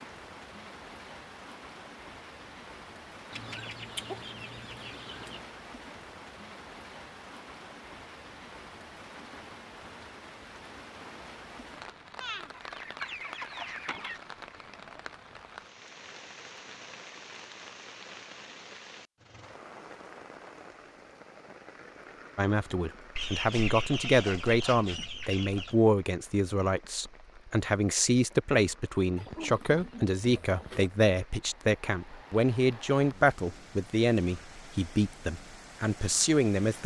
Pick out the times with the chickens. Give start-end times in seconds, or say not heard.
3.3-5.5, 12.2-14.2, 23.1-25.8, 29.1-30.9.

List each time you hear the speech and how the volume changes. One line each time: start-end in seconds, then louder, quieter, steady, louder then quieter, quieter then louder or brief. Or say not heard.
22.4-36.8 steady.